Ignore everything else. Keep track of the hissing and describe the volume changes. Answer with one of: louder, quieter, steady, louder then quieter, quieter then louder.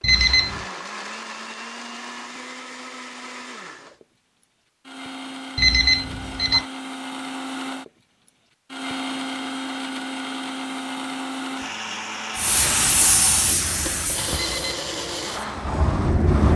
quieter then louder.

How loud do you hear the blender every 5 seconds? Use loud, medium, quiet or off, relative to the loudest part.
medium, loud, loud, loud.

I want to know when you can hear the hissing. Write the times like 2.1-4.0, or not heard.
12.3-16.5.